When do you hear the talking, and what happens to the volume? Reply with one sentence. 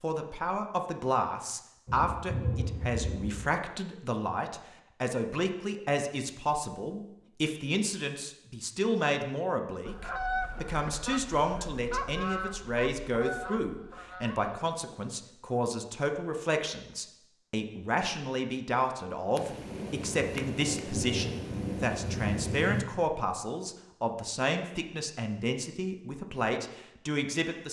You can hear the talking from 0.0 to 27.6 s, at a steady volume.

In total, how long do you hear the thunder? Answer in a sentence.
You can hear the thunder for 5 seconds altogether.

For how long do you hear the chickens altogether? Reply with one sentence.
You can hear the chickens for 5 seconds altogether.